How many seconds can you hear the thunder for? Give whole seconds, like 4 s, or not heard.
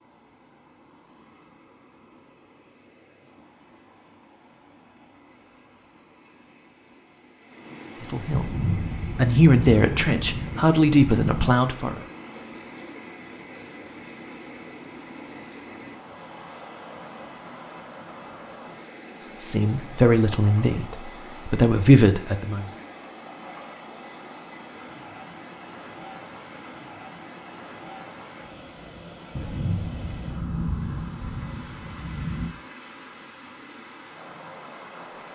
6 s.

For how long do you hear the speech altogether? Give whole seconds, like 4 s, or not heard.
7 s.